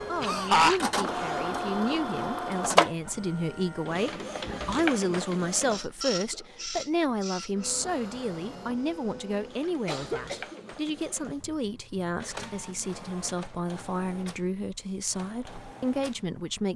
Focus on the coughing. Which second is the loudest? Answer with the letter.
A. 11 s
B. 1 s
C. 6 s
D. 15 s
B.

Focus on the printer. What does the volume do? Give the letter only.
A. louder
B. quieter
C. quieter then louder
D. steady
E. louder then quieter
B.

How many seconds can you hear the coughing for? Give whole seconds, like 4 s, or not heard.
3 s.